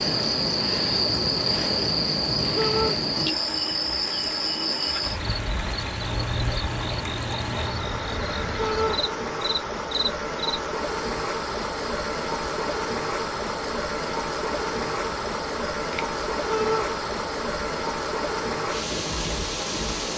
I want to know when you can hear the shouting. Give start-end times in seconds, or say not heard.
2.5-3.0, 8.6-9.0, 16.4-16.9.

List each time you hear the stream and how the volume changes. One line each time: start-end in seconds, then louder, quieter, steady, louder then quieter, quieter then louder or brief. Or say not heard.
0.0-20.1 louder.